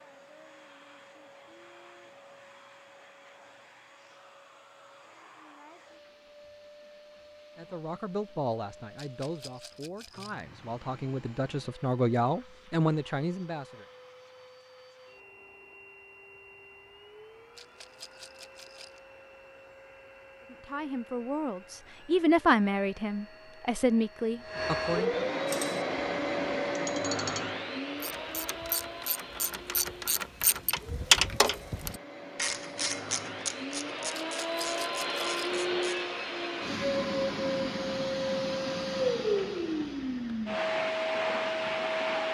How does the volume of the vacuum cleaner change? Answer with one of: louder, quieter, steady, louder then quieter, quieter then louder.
louder.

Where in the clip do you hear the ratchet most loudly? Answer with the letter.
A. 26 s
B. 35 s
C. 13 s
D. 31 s
D.